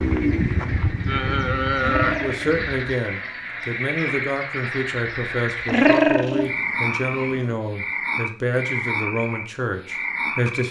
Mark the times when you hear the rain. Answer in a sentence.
You can't hear the rain here.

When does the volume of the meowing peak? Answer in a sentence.
The loudest moment of the meowing is at 6 seconds.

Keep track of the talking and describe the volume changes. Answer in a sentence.
The volume of the talking stays about the same.